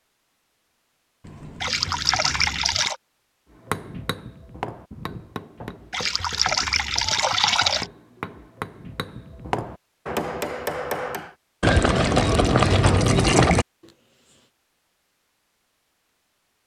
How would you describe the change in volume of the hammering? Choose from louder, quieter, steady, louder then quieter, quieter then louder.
quieter then louder.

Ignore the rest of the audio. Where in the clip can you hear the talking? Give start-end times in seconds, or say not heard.
not heard.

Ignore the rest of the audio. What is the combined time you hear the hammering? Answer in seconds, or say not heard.
8 s.